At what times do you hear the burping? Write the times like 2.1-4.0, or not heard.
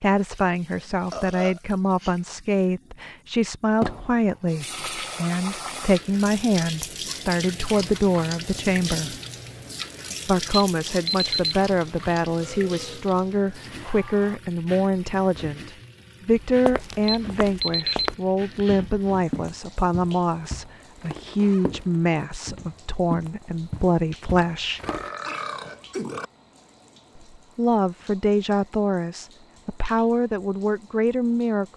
1.1-2.1, 12.4-14.4, 24.4-26.3.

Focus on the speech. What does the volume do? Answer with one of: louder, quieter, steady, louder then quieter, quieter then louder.
steady.